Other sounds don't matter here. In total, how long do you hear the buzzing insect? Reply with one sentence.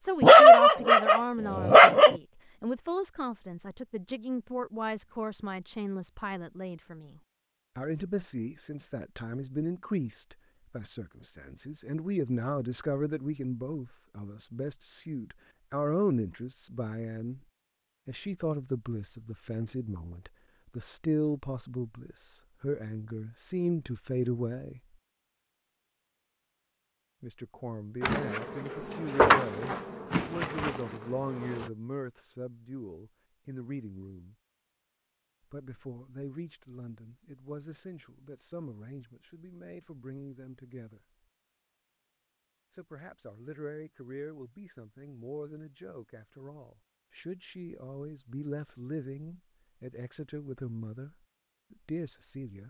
You can hear the buzzing insect for 4 seconds altogether.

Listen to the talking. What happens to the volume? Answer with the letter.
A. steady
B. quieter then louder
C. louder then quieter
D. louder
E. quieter
E.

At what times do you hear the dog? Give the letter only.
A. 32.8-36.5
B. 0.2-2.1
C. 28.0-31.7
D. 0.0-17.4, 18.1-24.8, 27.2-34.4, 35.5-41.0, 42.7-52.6
B.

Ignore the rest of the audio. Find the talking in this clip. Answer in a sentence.
The talking can be heard from 0.0 to 17.4 s, from 18.1 to 24.8 s, from 27.2 to 34.4 s, from 35.5 to 41.0 s and from 42.7 to 52.6 s.